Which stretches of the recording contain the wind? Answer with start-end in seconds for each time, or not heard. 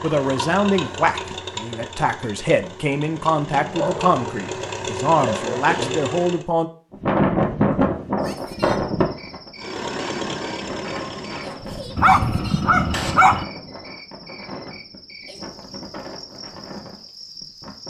6.9-17.8.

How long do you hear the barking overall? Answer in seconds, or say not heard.
4 s.